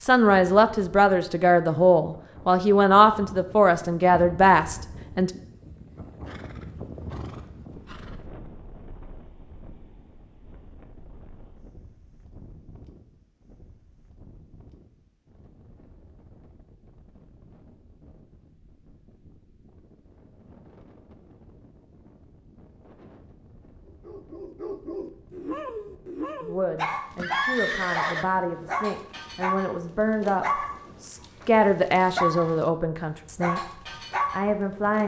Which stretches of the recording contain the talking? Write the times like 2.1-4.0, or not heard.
0.0-5.3, 26.4-33.6, 34.3-35.0.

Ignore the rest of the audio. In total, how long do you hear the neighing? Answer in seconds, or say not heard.
3 s.